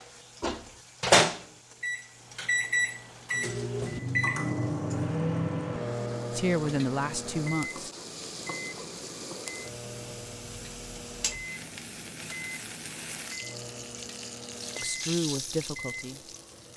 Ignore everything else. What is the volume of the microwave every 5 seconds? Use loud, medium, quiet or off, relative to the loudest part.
loud, medium, quiet, quiet.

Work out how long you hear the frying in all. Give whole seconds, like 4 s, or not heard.
17 s.